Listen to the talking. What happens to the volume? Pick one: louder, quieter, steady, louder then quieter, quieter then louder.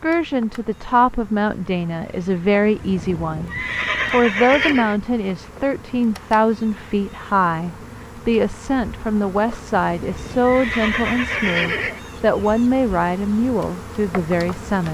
steady.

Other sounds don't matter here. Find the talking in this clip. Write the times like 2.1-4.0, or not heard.
0.0-14.8.